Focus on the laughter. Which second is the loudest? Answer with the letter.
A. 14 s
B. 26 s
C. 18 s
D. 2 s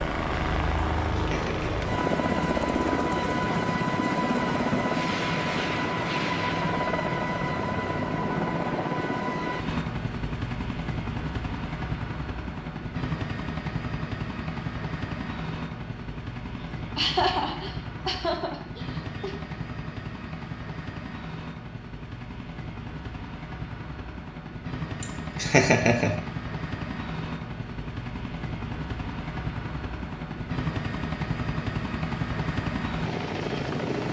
B.